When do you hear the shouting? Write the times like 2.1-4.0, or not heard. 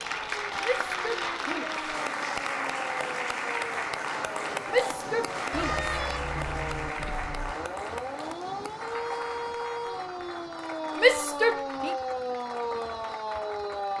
0.6-1.9, 4.7-5.9, 10.9-11.9.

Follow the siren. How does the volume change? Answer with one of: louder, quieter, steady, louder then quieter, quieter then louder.
louder.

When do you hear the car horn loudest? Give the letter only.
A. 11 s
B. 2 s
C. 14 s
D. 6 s
D.